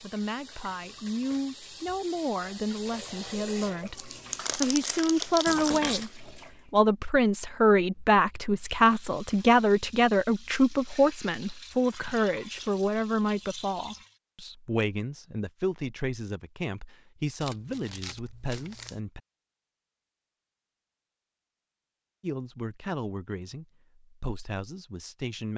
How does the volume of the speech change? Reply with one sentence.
The volume of the speech goes up, then down.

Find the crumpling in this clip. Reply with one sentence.
The crumpling can be heard from 3.6 to 6.2 s and from 17.4 to 19.0 s.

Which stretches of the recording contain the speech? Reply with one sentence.
You can hear the speech from 0.0 to 19.2 s and from 22.2 to 25.5 s.